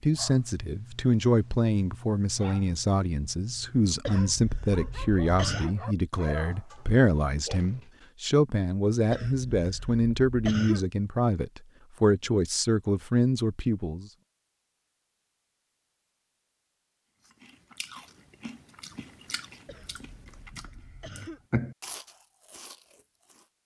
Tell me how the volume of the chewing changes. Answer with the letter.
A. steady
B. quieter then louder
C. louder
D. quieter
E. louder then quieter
E.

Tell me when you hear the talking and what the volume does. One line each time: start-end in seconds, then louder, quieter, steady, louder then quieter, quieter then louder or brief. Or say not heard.
0.0-14.1 steady.